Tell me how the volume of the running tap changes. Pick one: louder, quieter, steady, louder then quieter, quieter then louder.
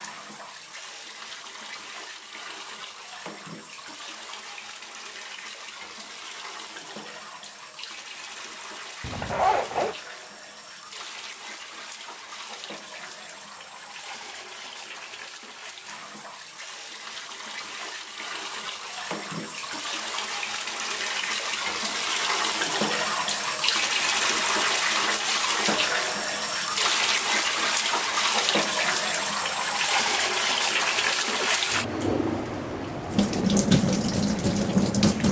louder.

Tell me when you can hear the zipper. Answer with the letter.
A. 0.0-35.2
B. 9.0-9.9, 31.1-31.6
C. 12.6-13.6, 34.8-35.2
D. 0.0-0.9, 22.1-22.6
B.